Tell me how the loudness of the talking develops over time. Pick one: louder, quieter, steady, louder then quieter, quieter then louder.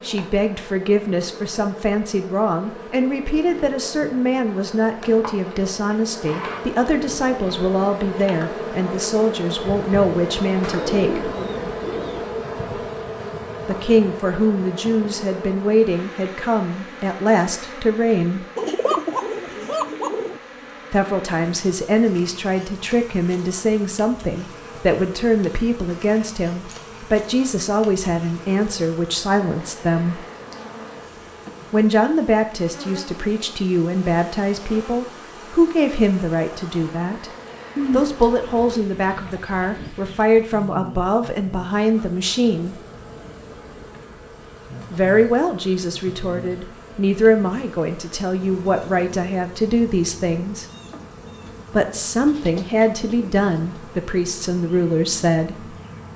steady.